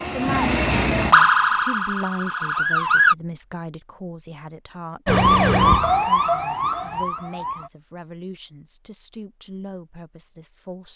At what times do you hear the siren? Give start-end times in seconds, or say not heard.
0.0-3.1, 5.0-7.7.